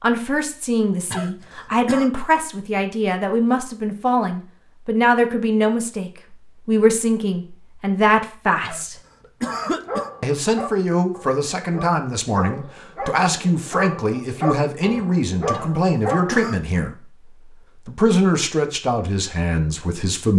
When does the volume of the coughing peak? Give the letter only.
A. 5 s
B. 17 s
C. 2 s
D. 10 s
D.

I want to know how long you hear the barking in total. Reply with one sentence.
You can hear the barking for 7 seconds altogether.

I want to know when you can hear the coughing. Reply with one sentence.
The coughing can be heard from 1.1 to 2.1 s, from 8.6 to 10.1 s and from 15.5 to 16.6 s.